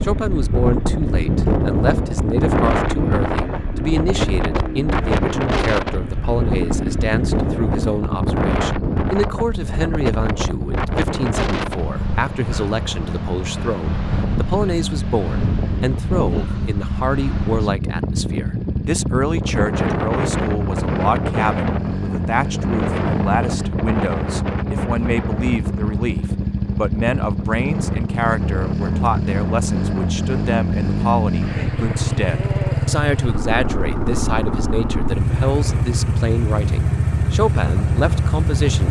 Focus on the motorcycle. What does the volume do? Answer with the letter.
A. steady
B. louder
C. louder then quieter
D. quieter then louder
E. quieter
B.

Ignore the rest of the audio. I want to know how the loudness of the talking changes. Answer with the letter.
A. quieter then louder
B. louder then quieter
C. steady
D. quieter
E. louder
C.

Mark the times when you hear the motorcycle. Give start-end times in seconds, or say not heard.
0.0-38.8.